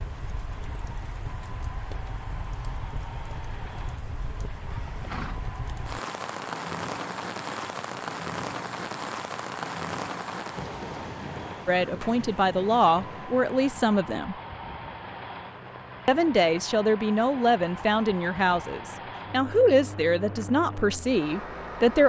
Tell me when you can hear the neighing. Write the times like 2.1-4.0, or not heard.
4.7-5.3.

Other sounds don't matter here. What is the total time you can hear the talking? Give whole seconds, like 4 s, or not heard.
9 s.